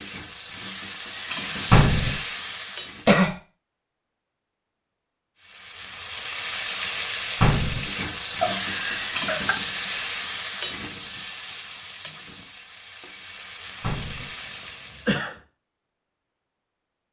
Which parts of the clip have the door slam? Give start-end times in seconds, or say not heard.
1.7-2.2, 7.4-7.8, 13.8-14.3.